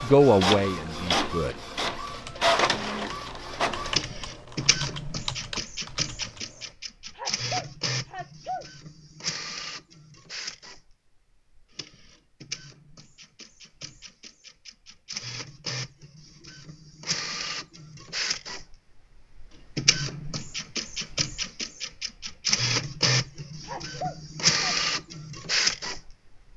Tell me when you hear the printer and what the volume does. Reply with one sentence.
You can hear the printer from 0.0 to 26.5 s, getting quieter then louder.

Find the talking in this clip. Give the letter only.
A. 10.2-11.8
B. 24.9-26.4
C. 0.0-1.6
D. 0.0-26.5
C.